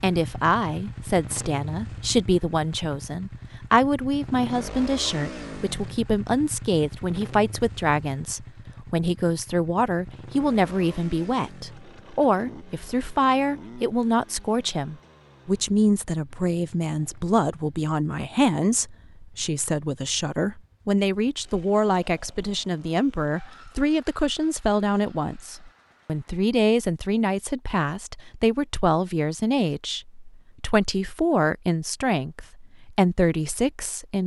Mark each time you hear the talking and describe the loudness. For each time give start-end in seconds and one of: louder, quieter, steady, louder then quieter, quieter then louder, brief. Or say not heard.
0.0-34.2 steady.